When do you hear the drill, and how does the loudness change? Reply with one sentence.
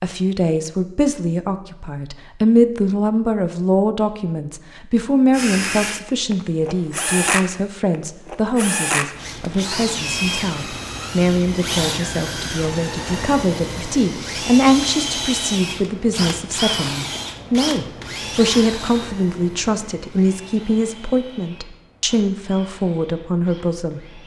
You can hear the drill from 5.3 to 24.2 s, getting quieter.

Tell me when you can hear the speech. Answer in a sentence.
You can hear the speech from 0.0 to 24.2 s.